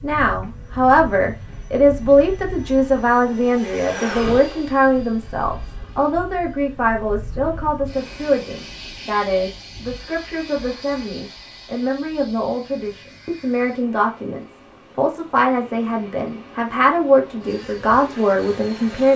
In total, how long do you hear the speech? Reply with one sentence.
The speech can be heard for 19 seconds in total.